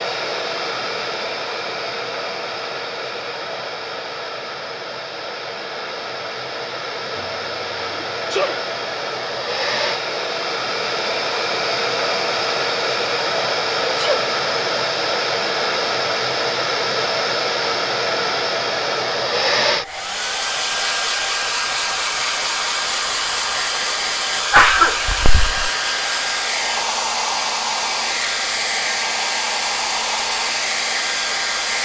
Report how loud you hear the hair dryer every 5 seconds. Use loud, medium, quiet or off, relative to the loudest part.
medium, medium, loud, loud, loud, loud, loud.